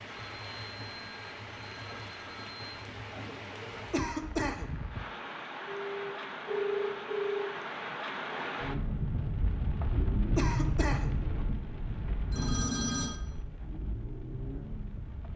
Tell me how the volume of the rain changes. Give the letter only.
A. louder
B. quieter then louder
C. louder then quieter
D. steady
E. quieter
C.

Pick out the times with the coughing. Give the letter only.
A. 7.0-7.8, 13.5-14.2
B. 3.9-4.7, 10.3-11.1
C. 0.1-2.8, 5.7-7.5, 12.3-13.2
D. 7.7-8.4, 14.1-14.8
B.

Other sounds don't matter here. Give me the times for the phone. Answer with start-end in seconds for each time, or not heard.
0.1-2.8, 5.7-7.5, 12.3-13.2.